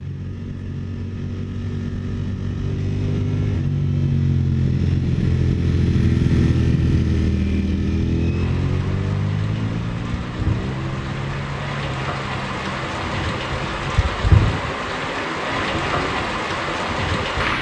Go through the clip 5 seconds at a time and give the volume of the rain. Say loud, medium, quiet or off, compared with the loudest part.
off, quiet, loud, loud.